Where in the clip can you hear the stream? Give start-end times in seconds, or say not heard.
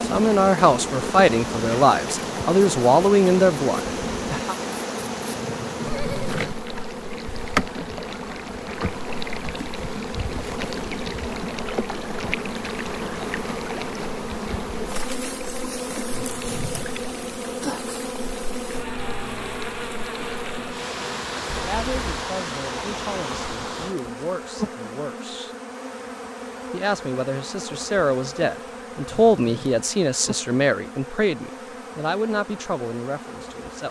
0.0-23.9.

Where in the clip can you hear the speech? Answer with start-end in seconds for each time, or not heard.
0.0-4.5, 21.5-25.5, 26.7-33.8.